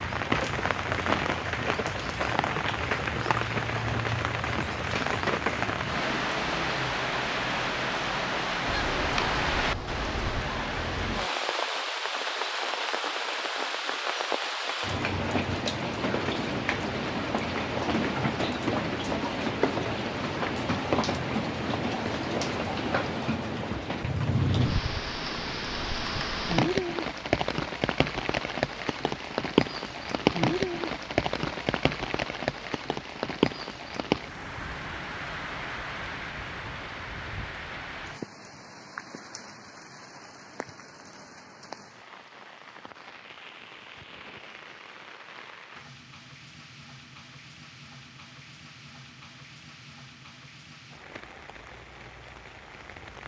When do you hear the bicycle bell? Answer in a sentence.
You can't hear the bicycle bell here.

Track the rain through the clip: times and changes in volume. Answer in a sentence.
The rain can be heard from 0.0 to 53.2 s, getting quieter.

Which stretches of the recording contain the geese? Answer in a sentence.
You can hear the geese from 8.7 to 10.4 s.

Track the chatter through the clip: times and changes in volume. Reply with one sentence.
You can't hear the chatter here.